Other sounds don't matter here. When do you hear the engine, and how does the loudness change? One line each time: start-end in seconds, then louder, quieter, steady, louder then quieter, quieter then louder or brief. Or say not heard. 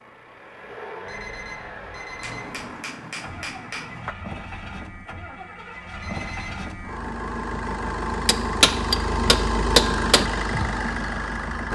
0.0-11.7 louder.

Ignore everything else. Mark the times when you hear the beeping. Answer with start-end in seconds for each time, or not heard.
1.1-2.6, 6.0-6.7.